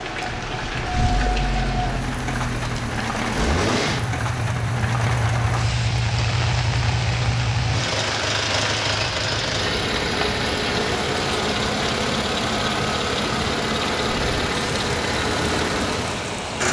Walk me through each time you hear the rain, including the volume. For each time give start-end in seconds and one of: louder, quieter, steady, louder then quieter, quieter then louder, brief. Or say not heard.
0.0-16.6 steady.